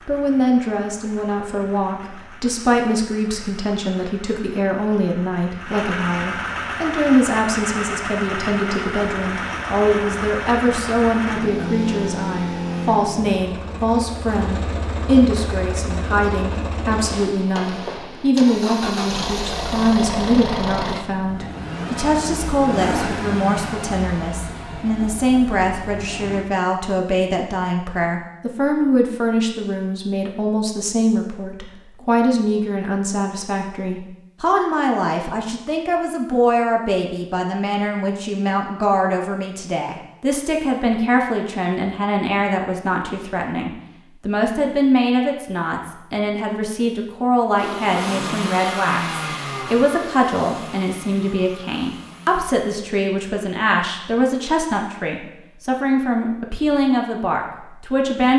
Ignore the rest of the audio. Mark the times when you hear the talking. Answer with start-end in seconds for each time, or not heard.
0.1-58.3.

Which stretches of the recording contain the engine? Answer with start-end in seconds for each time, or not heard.
0.0-26.4, 47.5-52.6.